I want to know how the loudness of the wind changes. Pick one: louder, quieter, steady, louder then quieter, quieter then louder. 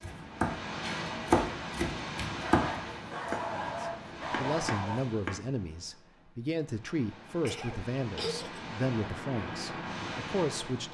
quieter then louder.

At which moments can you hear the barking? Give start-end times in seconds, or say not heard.
2.4-5.0.